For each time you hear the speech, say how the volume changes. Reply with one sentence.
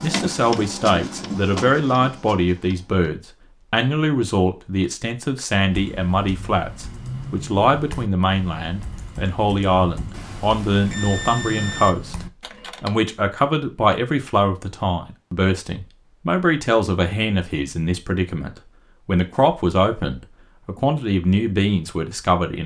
The speech can be heard from 0.0 to 22.6 s, at a steady volume.